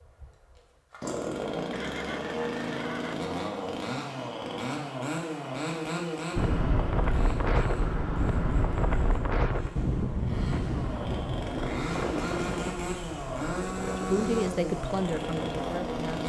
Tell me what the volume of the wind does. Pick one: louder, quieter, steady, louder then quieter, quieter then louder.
quieter.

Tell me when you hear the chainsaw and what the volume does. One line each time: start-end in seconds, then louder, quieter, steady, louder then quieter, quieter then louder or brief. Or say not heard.
0.0-16.2 quieter then louder.